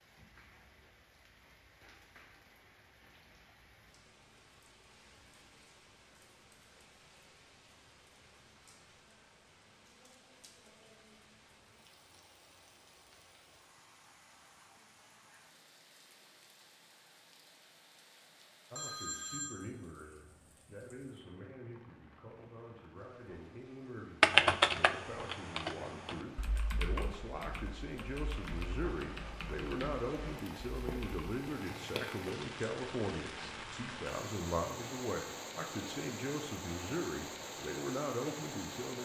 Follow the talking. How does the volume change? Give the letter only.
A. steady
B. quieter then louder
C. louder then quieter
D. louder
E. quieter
D.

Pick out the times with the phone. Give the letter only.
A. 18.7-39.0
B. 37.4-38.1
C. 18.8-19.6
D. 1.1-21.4
C.